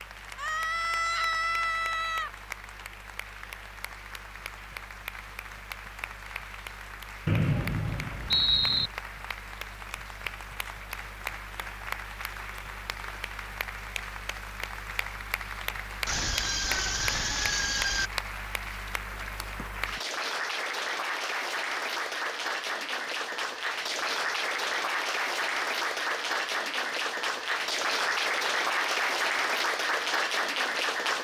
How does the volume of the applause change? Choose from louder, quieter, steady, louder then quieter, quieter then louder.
louder.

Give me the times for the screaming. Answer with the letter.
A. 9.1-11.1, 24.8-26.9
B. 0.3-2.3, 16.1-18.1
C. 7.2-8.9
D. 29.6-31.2
B.